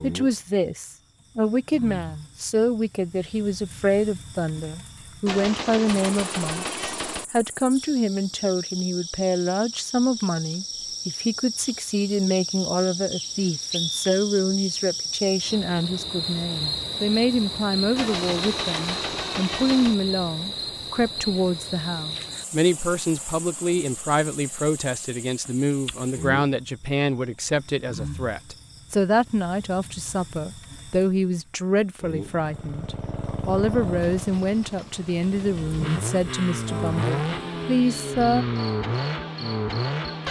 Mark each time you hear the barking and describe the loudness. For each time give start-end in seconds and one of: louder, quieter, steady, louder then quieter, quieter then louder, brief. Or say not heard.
not heard.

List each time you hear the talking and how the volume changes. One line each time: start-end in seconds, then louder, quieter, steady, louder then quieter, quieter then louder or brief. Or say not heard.
0.0-38.5 steady.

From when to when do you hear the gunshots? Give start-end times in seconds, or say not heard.
5.2-7.2, 17.9-19.9, 34.0-35.9.